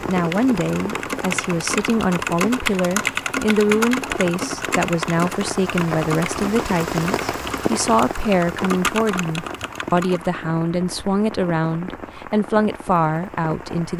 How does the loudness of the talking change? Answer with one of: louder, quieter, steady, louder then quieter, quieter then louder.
steady.